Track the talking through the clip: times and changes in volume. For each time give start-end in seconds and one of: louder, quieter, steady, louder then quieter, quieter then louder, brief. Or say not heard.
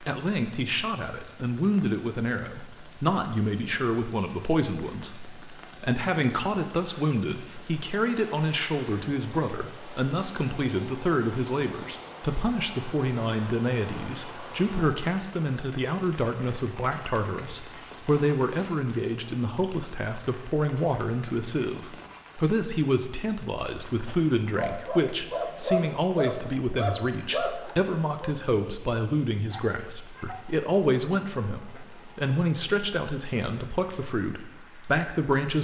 0.0-35.6 steady.